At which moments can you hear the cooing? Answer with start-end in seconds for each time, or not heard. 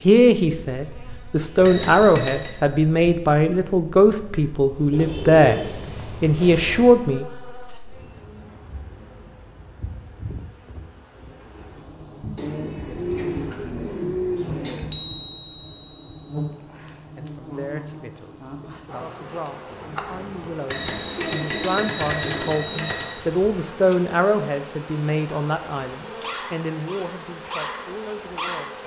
4.9-7.0, 12.3-14.9, 21.1-22.6.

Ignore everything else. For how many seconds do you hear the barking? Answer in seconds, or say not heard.
3 s.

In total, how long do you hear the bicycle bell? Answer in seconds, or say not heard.
5 s.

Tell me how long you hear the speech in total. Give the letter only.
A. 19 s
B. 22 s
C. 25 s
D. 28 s
A.